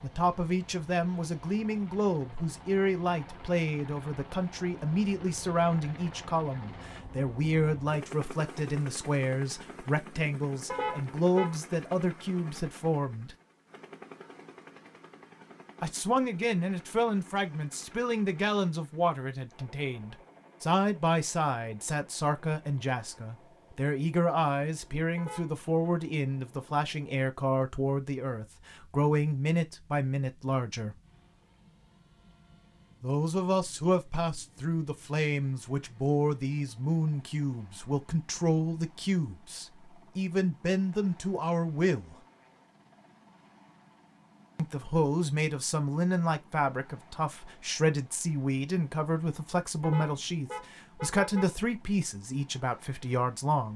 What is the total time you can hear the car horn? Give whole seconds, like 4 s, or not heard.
3 s.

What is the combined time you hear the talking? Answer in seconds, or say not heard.
47 s.